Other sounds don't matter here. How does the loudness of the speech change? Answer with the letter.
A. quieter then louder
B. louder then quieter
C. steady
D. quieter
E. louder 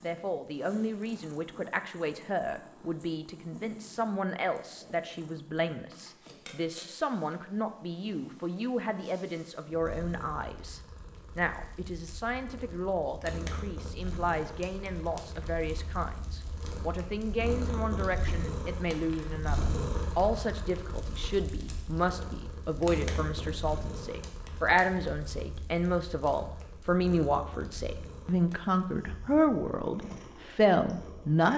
E.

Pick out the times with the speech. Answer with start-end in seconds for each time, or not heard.
0.0-31.5.